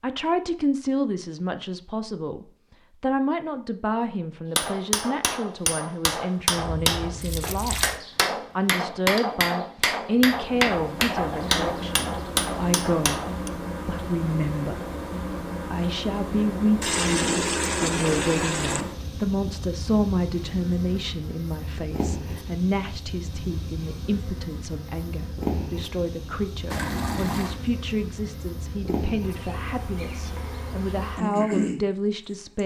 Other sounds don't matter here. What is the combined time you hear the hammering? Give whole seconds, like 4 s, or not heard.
9 s.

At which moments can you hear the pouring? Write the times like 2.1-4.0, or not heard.
6.5-8.0, 16.8-18.9, 26.7-27.6.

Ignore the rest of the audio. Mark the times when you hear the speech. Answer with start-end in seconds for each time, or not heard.
0.0-7.8, 8.6-13.2, 13.8-14.9, 15.7-32.6.